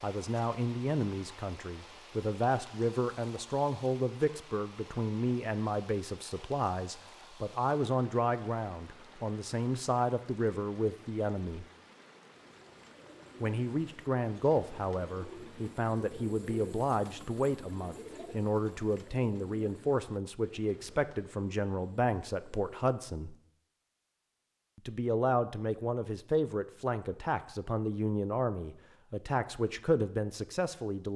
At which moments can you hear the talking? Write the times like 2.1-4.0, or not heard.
0.0-11.7, 13.4-23.4, 24.8-31.1.